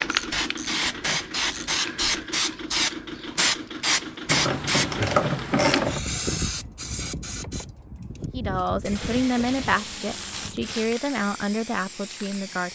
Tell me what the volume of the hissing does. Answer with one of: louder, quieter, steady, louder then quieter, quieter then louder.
quieter.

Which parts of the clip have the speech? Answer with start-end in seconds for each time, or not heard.
8.2-12.6.